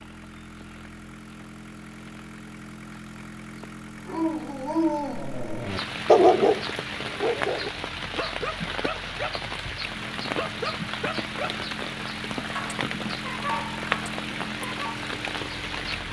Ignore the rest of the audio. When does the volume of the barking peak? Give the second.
6 s.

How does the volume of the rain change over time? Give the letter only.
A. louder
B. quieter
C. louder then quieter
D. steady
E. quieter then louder
A.